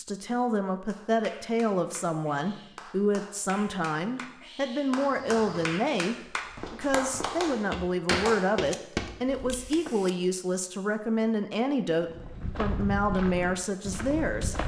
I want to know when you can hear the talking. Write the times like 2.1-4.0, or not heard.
0.0-14.6.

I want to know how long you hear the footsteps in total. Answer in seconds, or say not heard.
8 s.